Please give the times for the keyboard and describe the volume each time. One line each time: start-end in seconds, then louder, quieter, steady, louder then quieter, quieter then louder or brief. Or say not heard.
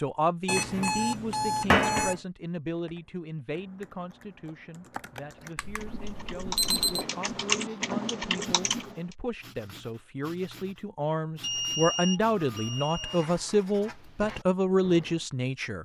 2.7-9.0 louder.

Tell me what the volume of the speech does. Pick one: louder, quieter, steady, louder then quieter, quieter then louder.
quieter then louder.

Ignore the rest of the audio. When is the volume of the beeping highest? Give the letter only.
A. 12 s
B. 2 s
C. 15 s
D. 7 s
B.